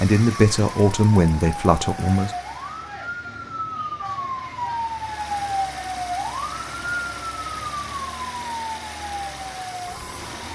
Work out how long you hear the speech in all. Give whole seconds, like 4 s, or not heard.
2 s.